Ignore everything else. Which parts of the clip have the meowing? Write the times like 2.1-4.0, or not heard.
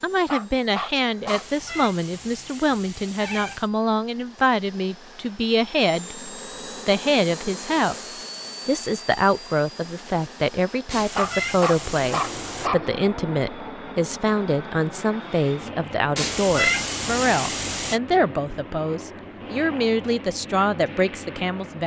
1.2-3.7, 10.9-12.7, 16.1-18.0.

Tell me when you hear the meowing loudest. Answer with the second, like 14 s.
17 s.